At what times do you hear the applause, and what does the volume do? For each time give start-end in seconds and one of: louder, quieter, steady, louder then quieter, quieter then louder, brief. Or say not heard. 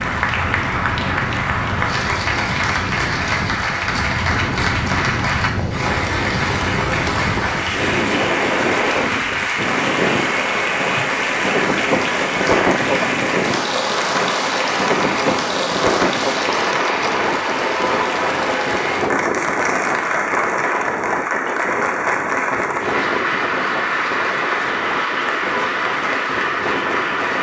0.0-27.3 steady.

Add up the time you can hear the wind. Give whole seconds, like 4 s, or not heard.
27 s.